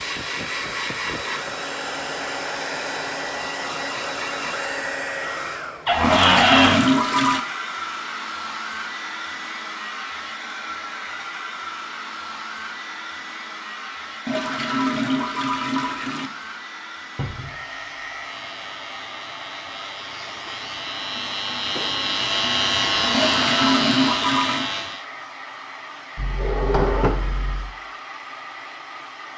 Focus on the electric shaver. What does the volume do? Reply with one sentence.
The loudness of the electric shaver goes up.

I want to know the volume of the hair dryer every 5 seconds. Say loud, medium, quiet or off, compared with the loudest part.
loud, loud, medium, medium, medium, medium.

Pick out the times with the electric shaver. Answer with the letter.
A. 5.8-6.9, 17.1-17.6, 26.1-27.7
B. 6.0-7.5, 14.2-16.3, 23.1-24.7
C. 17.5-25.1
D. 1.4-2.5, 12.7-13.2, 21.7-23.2
C.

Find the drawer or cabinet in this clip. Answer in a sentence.
You can hear the drawer or cabinet from 5.8 to 6.9 s, from 17.1 to 17.6 s and from 26.1 to 27.7 s.